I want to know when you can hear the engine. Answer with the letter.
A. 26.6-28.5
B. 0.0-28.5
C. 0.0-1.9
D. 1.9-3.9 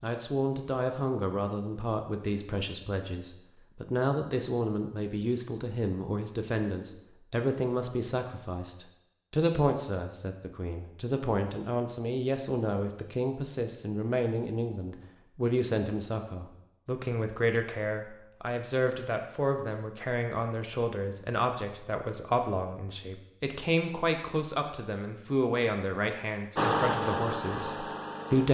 A.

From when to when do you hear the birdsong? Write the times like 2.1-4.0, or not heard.
not heard.